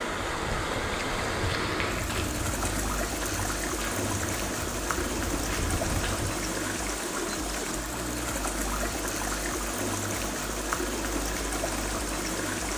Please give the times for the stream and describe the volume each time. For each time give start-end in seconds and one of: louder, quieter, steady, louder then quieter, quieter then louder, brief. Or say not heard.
0.0-12.7 steady.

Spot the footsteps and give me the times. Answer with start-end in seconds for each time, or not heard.
1.0-6.3.